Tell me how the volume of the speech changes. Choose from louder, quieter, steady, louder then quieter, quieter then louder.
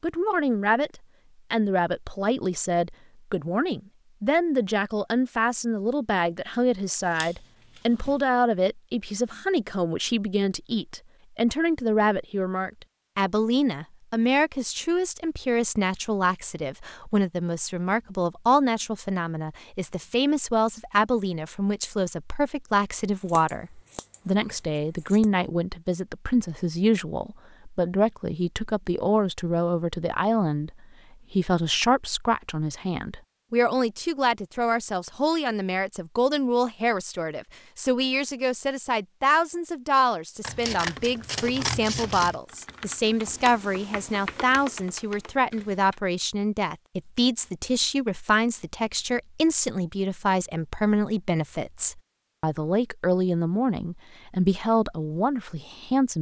steady.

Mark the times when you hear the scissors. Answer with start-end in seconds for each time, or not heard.
7.0-8.2, 23.2-25.2, 40.4-42.4.